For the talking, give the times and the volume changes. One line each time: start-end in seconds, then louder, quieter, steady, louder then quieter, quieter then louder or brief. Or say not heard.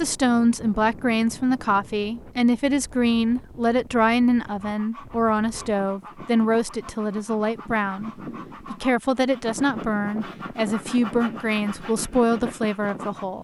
0.0-13.3 steady.